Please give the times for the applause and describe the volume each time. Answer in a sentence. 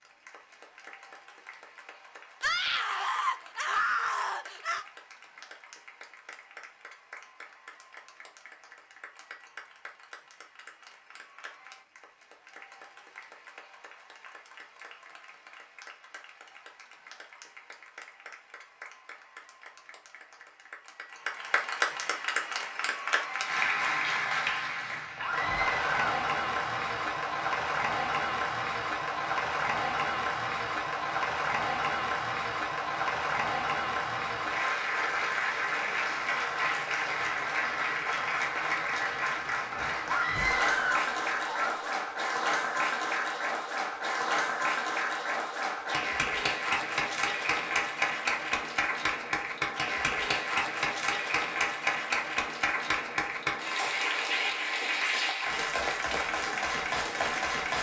The applause can be heard from 0.0 to 57.7 s, getting louder.